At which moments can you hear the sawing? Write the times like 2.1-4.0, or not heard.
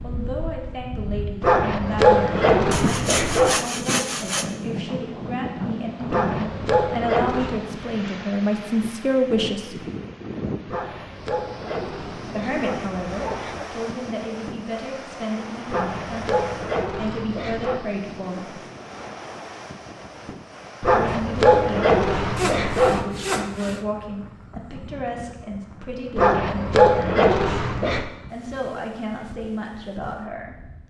2.7-4.5, 22.4-23.9.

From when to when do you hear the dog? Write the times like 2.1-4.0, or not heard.
1.4-3.5, 6.1-7.5, 10.7-13.7, 15.7-17.8, 20.8-23.1, 26.1-28.1.